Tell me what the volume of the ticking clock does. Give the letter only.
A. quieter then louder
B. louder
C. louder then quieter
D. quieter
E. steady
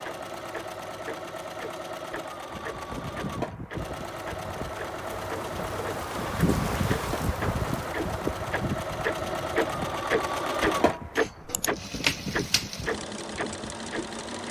C.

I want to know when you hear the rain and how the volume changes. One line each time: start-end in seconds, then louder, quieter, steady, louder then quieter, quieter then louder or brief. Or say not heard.
2.5-14.4 louder then quieter.